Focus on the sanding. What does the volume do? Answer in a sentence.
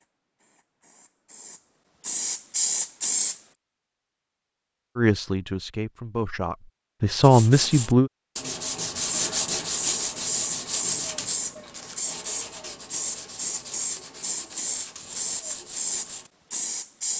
The volume of the sanding goes down.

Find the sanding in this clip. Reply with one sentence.
The sanding can be heard from 7.2 to 16.3 s.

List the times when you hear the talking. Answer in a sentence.
The talking can be heard from 5.0 to 8.1 s.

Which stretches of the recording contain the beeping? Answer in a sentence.
The beeping can't be heard in this clip.